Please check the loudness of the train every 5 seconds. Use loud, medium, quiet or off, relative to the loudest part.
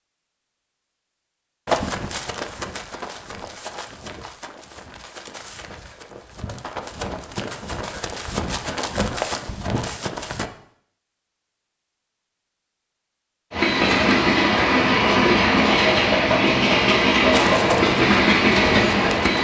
off, off, loud, loud.